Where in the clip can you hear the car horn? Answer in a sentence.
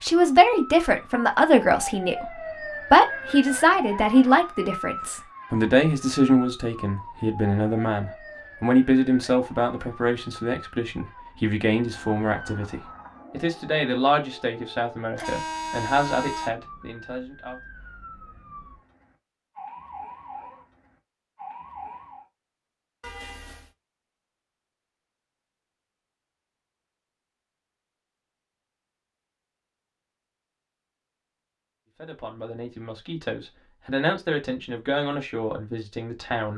The car horn can be heard from 15.2 to 16.5 s and from 23.0 to 23.7 s.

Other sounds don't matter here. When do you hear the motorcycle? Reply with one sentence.
The motorcycle can't be heard in this clip.